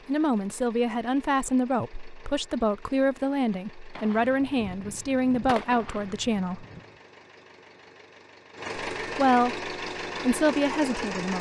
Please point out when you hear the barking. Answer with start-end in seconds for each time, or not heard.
not heard.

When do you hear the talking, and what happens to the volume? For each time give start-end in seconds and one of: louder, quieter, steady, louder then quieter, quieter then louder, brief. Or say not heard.
0.1-6.7 steady
9.0-11.3 brief.